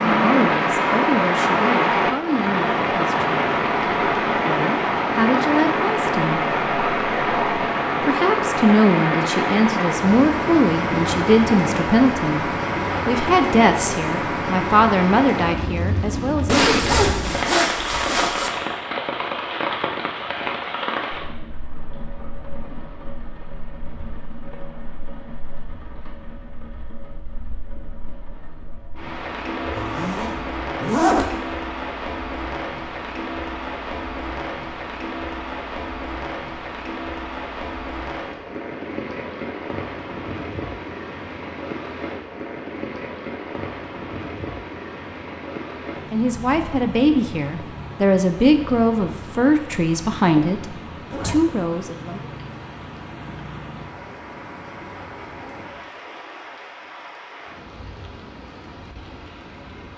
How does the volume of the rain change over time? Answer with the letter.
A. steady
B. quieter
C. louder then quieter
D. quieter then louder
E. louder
B.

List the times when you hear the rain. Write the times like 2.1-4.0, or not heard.
0.0-59.9.